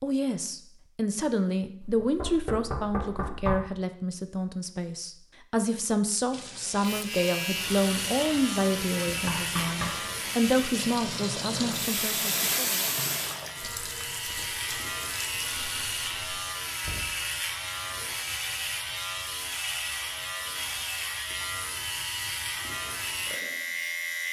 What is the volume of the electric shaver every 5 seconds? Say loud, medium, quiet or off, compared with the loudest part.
off, loud, loud, loud, loud.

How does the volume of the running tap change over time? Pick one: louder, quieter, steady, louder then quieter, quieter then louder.
louder then quieter.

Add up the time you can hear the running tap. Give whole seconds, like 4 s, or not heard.
10 s.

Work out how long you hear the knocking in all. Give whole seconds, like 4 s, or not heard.
3 s.